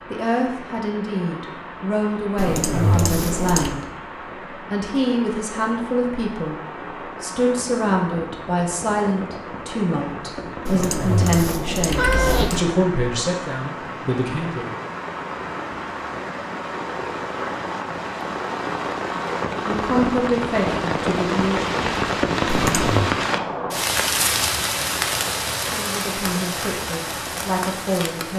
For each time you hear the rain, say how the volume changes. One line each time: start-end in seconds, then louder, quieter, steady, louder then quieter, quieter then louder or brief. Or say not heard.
0.0-28.3 louder.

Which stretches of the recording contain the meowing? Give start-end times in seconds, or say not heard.
2.4-3.8, 10.7-12.6, 22.4-23.1.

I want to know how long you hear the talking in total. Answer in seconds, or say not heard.
19 s.